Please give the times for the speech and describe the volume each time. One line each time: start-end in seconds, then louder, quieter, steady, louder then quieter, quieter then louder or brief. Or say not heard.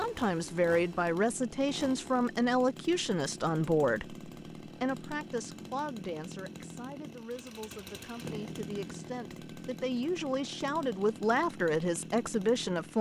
0.0-12.9 quieter then louder.